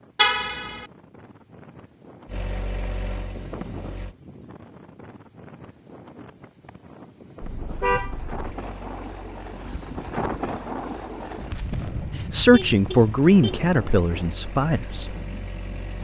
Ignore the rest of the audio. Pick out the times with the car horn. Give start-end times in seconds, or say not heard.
0.1-0.8, 7.4-8.4, 12.5-13.6.